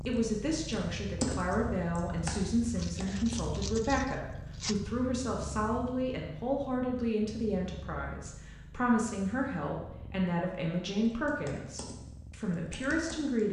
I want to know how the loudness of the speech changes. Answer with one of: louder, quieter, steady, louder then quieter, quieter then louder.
steady.